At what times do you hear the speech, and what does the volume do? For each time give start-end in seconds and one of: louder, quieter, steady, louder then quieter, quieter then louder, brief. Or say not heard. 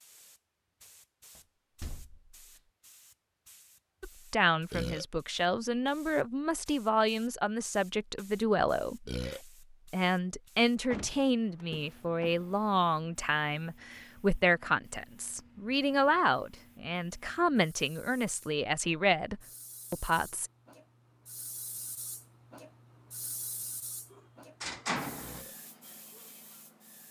4.0-20.5 steady.